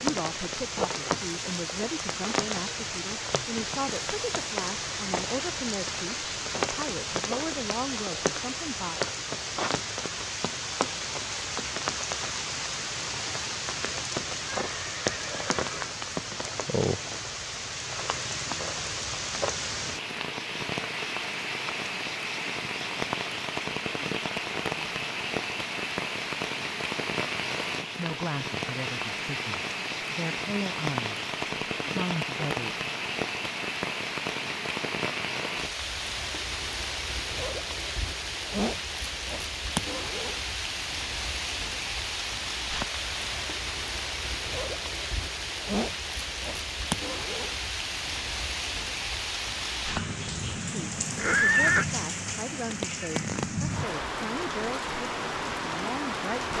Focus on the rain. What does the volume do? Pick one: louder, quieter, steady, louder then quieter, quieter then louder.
steady.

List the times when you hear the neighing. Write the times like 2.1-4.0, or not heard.
14.6-15.9, 51.1-51.9.